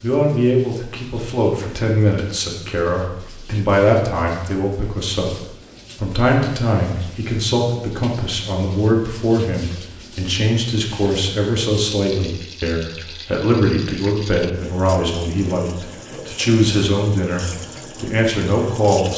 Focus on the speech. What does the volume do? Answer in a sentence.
The loudness of the speech stays about the same.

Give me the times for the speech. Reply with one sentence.
You can hear the speech from 0.0 to 19.1 s.